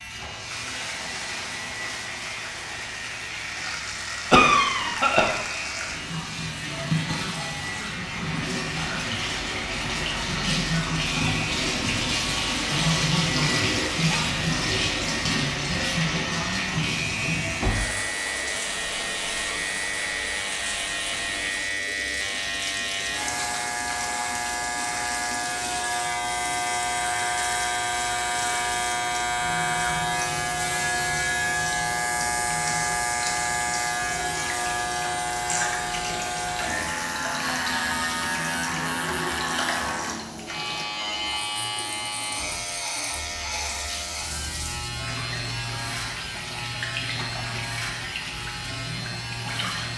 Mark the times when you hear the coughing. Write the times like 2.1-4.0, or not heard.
4.3-5.3.